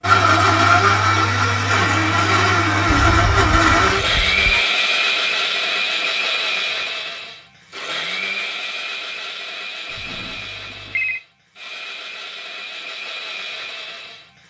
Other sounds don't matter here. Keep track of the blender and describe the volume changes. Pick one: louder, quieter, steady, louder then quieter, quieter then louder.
quieter.